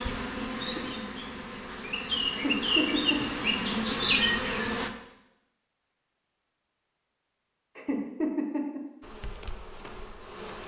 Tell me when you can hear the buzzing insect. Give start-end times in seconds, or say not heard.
0.0-4.9, 9.0-10.6.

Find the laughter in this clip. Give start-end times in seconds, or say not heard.
2.3-3.4, 7.8-8.8.